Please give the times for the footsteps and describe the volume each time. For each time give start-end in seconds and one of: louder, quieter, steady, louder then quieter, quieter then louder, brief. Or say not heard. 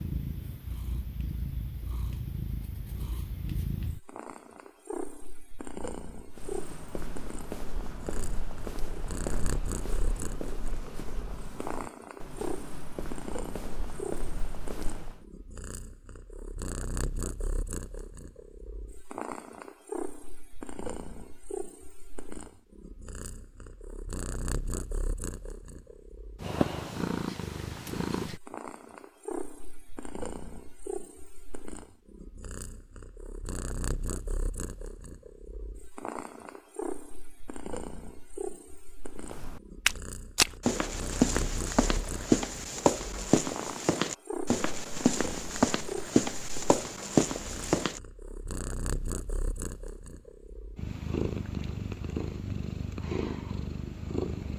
6.3-15.2 steady
39.1-48.0 steady.